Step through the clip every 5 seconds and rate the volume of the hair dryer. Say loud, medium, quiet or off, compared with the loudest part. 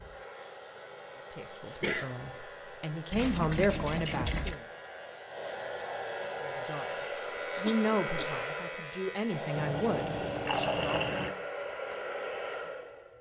medium, loud, loud.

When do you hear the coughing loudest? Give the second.
2 s.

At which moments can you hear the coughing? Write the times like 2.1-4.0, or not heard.
1.8-2.4, 7.6-8.4.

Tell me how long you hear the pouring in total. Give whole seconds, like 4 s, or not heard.
3 s.